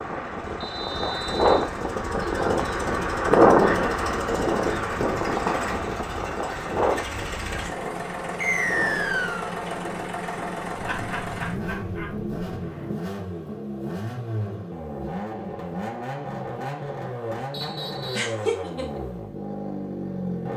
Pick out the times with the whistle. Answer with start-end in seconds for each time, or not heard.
0.6-1.6, 8.4-9.5, 17.5-18.3.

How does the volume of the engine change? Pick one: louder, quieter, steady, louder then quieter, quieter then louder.
louder.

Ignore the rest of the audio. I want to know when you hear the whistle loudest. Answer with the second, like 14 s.
9 s.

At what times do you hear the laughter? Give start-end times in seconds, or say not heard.
2.2-2.8, 10.8-12.1, 18.1-19.0.